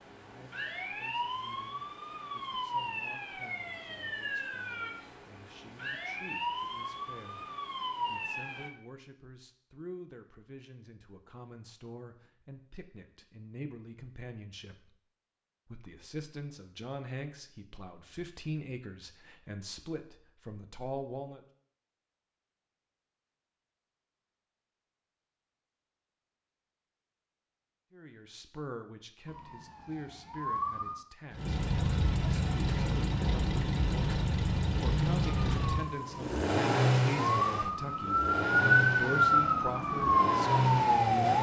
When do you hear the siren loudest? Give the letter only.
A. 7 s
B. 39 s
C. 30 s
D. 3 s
B.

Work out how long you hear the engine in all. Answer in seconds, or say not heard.
10 s.